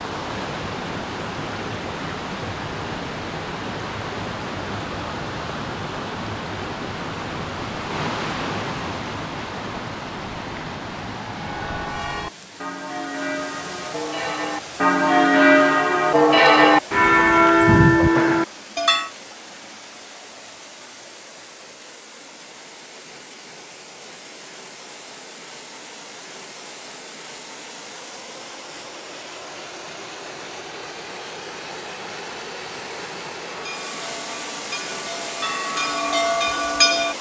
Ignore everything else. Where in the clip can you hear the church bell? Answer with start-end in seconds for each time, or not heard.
11.3-19.1, 33.5-37.1.